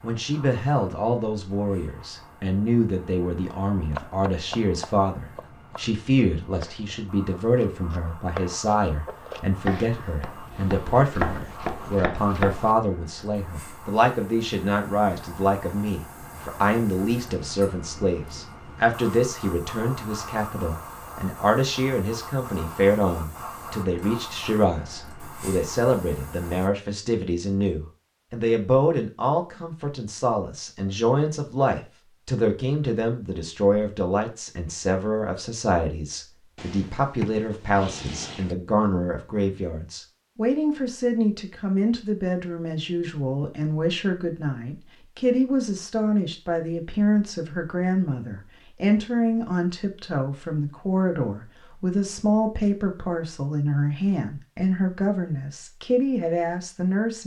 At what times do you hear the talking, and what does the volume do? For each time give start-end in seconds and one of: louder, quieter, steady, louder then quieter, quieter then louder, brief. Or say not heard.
0.0-57.2 steady.